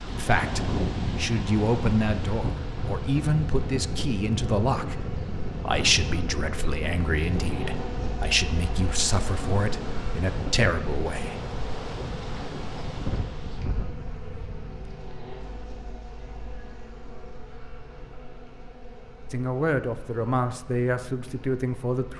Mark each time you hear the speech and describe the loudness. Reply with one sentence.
The speech can be heard from 0.0 to 11.4 s, at a steady volume; and briefly from 19.3 to 22.1 s.